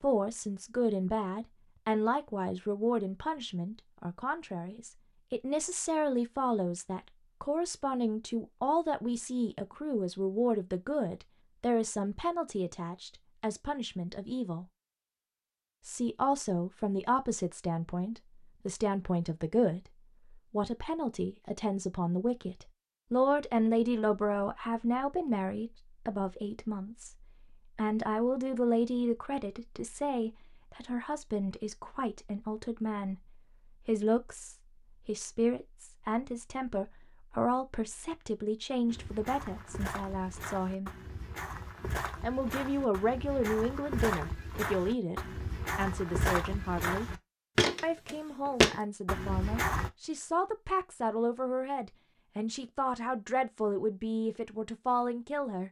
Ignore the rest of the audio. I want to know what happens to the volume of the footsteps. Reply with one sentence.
The loudness of the footsteps goes up.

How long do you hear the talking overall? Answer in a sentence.
You can hear the talking for 52 seconds altogether.